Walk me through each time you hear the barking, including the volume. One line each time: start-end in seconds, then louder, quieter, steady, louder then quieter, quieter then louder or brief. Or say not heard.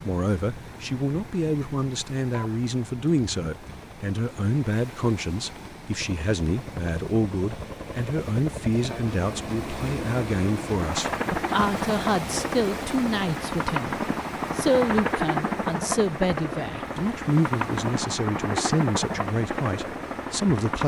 not heard.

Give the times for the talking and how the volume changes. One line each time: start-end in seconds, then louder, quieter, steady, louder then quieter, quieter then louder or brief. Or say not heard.
0.0-20.8 steady.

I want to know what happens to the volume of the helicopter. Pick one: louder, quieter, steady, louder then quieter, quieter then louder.
louder.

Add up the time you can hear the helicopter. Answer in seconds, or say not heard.
21 s.